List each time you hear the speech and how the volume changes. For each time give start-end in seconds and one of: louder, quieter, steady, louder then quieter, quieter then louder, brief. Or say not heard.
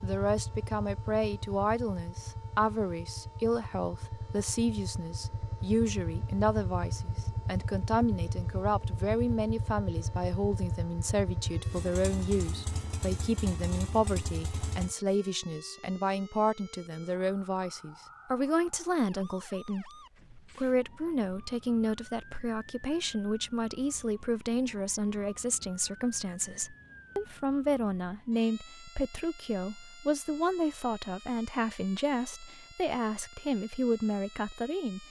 0.0-35.0 steady.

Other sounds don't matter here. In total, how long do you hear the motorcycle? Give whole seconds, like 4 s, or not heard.
15 s.